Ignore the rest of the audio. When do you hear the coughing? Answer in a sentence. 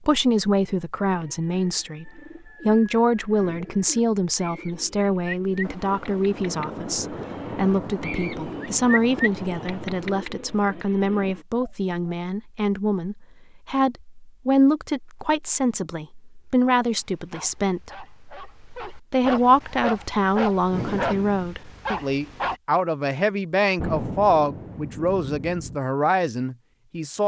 You can't hear the coughing here.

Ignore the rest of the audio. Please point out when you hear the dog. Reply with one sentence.
The dog can be heard from 17.0 to 22.6 s.